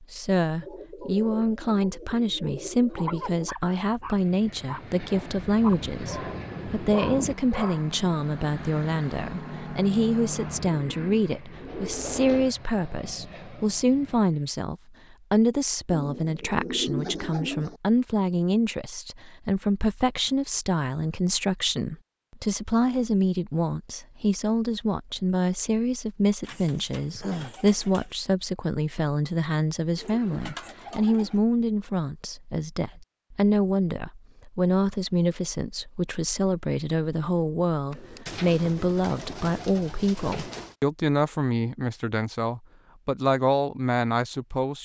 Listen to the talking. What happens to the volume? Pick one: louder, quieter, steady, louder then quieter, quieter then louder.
steady.